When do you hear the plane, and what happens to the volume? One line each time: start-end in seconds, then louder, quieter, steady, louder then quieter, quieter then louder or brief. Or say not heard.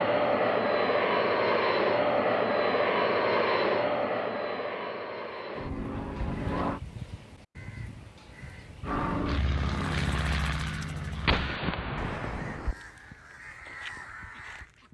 0.0-6.8 quieter
8.8-11.6 brief.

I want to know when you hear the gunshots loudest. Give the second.
11 s.